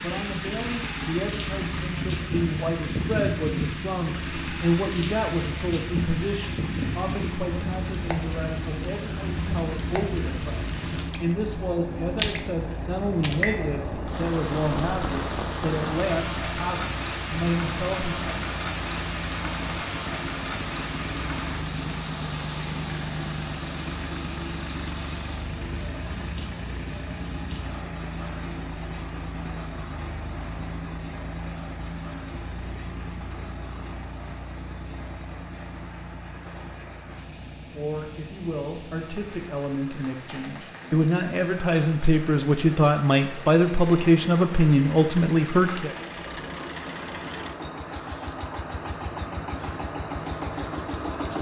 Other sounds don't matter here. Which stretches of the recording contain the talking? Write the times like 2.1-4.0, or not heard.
0.0-18.4, 37.7-45.9.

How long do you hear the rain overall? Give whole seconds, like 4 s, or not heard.
51 s.